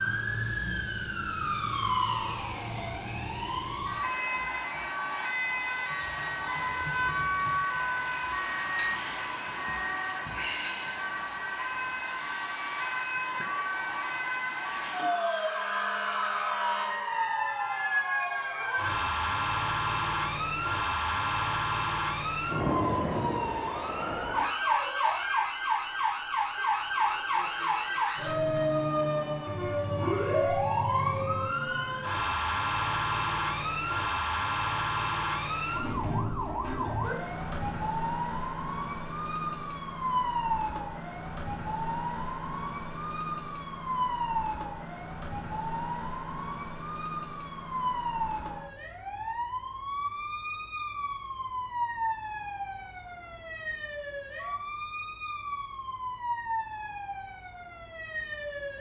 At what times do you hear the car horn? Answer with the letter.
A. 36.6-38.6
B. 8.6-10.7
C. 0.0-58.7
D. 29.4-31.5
D.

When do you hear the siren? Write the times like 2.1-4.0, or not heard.
0.0-58.7.